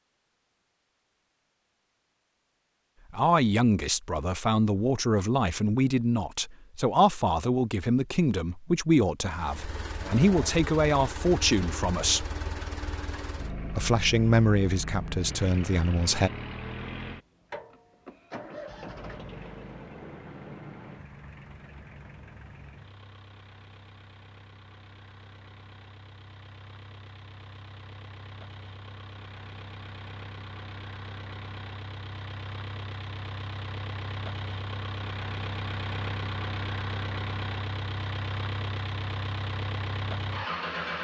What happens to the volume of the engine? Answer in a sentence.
The volume of the engine goes down, then up.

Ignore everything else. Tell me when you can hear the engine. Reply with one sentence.
The engine can be heard from 9.2 to 40.9 s.